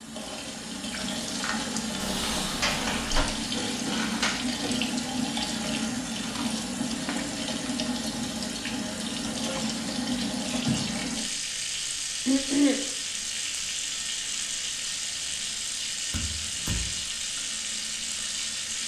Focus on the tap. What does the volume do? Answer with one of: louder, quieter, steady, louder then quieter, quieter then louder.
steady.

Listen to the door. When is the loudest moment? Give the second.
3 s.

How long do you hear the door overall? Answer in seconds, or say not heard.
2 s.